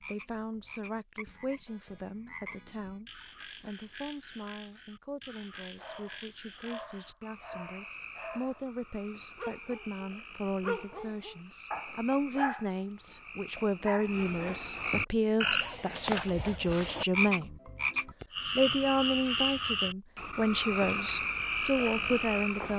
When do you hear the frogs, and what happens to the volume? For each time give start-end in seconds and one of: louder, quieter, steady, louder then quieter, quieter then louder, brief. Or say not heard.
0.0-22.7 louder.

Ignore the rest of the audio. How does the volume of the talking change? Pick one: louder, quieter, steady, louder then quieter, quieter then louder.
louder.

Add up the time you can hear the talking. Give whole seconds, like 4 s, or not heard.
23 s.